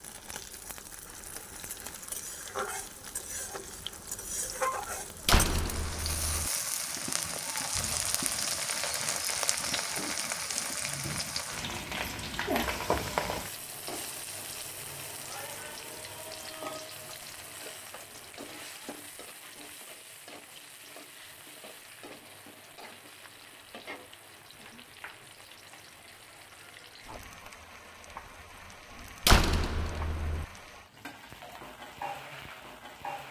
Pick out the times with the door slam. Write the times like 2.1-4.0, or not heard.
5.2-6.5, 29.2-30.4.